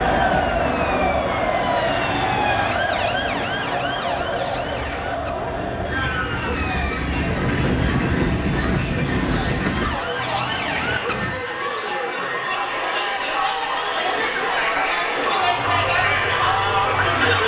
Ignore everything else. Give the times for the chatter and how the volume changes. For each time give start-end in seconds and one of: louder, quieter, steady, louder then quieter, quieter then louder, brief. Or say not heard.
0.0-17.4 quieter then louder.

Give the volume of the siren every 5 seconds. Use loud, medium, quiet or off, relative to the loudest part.
loud, medium, loud, loud.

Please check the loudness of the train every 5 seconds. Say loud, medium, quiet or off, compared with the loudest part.
medium, loud, off, off.